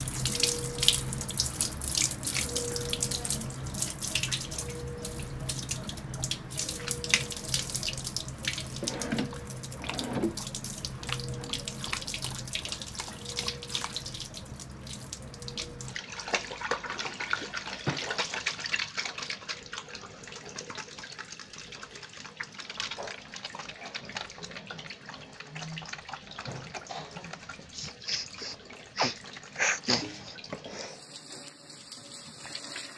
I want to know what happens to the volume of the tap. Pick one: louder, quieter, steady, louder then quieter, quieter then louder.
quieter.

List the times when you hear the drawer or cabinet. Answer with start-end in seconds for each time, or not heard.
8.8-10.4, 16.9-18.1.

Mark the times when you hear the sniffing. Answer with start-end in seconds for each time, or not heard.
27.8-30.4.